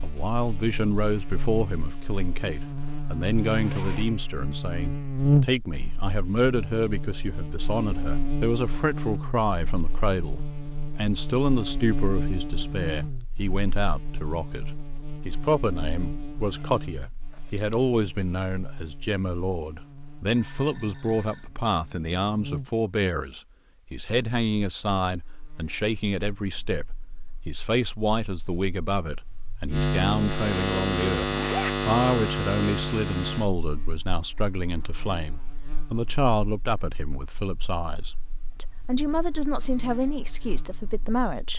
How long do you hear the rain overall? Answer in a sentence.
The rain can't be heard in this clip.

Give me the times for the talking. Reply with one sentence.
The talking can be heard from 0.0 to 41.5 s.